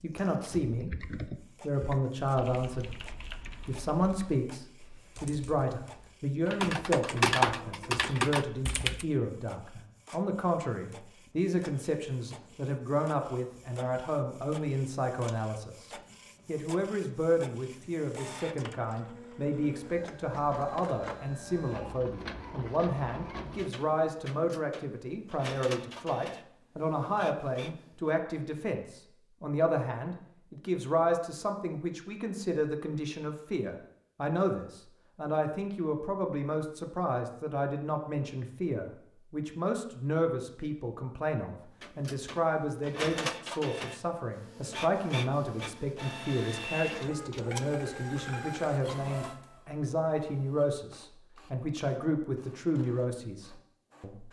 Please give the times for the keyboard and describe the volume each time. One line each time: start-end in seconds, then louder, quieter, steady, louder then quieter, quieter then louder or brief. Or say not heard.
0.6-9.1 quieter then louder.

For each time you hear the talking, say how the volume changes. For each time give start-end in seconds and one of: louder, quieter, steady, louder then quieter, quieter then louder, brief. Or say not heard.
0.0-0.9 brief
1.6-3.0 brief
3.6-54.2 steady.